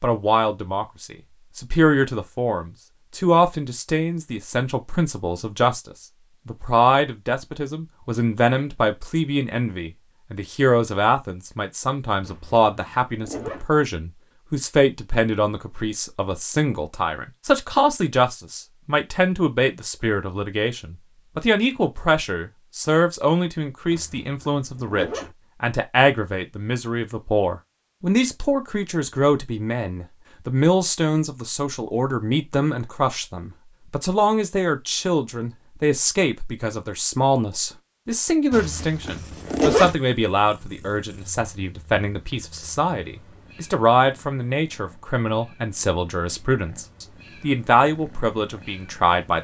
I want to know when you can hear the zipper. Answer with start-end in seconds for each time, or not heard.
12.2-13.7, 23.9-25.4, 38.5-40.0.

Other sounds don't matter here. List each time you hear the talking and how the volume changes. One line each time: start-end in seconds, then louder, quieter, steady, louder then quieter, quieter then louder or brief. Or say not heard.
0.0-49.3 steady.